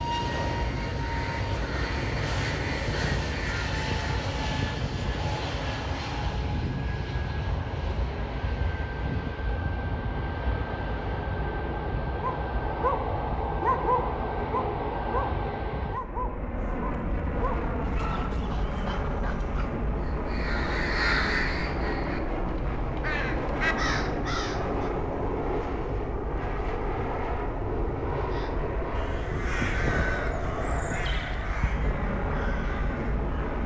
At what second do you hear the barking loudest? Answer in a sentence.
The loudest moment of the barking is at 14 seconds.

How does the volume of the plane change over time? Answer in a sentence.
The volume of the plane stays about the same.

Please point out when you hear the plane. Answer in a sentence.
You can hear the plane from 0.0 to 33.6 s.